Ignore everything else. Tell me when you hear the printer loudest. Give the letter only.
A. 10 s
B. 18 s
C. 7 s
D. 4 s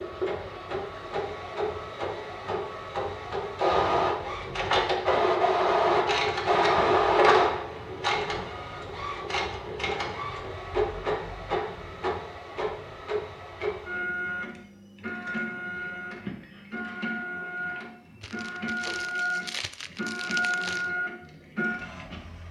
C.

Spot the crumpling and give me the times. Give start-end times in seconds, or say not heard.
18.2-20.9.